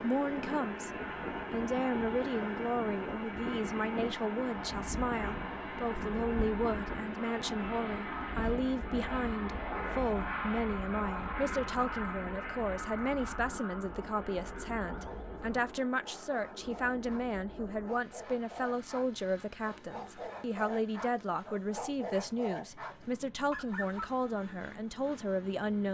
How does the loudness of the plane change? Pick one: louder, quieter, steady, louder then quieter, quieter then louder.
quieter.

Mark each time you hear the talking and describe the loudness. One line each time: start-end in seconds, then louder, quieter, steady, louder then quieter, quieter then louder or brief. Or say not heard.
0.0-0.9 brief
1.5-25.8 steady.